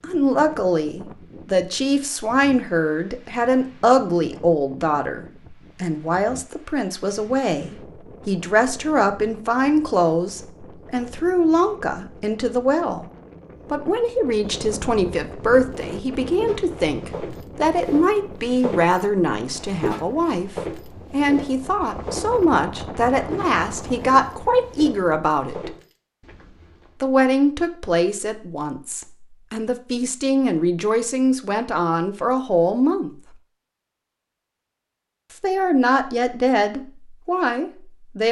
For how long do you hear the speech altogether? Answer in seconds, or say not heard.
34 s.